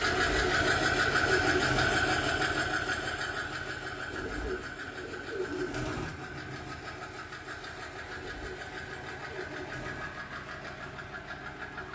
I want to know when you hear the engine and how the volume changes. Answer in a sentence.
The engine can be heard from 0.0 to 11.9 s, getting quieter.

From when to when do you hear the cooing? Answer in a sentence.
The cooing can be heard from 0.0 to 2.0 s, from 4.1 to 6.1 s and from 8.1 to 10.1 s.